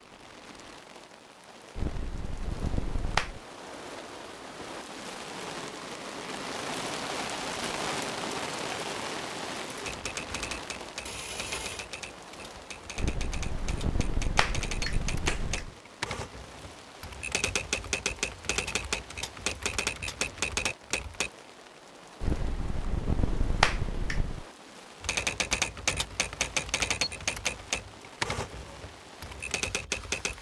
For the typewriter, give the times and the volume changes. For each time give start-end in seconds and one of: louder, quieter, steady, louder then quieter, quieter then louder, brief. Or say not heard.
9.8-21.3 louder
25.0-30.3 quieter.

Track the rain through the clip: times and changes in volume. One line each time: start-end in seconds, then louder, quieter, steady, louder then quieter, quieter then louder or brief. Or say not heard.
0.0-30.3 louder then quieter.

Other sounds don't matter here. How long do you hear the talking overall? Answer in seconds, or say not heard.
not heard.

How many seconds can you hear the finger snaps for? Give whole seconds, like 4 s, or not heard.
7 s.